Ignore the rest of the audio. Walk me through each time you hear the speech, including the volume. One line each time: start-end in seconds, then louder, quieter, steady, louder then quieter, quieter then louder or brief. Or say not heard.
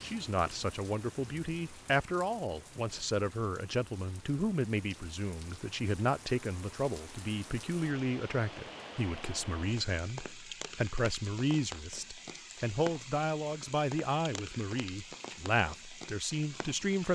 0.0-17.1 steady.